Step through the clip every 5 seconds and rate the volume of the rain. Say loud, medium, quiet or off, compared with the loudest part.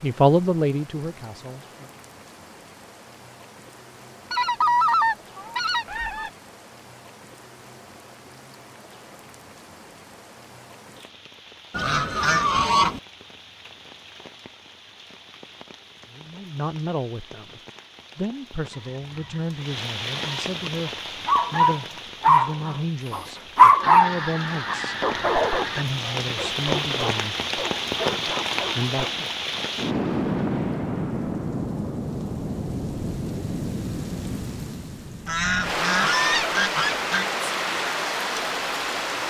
quiet, quiet, quiet, quiet, medium, loud, loud, loud.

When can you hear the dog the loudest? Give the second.
24 s.